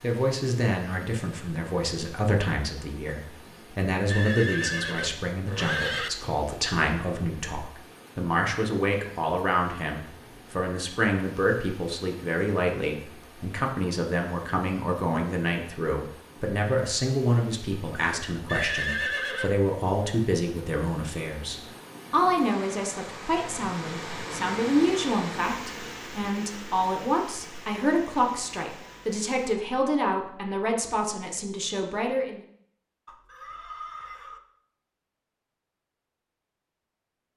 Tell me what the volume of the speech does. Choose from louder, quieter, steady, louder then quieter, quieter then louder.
steady.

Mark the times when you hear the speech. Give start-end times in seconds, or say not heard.
0.0-32.4.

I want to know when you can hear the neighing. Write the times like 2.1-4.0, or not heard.
4.0-6.1, 18.4-19.6, 33.0-34.4.